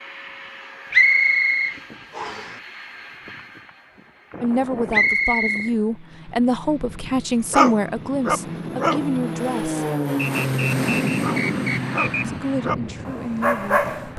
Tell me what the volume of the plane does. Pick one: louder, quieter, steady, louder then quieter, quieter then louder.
louder.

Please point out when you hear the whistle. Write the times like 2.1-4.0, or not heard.
0.9-2.5, 4.9-5.7, 10.2-12.2.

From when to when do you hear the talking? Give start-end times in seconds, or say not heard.
4.4-9.9, 12.2-14.1.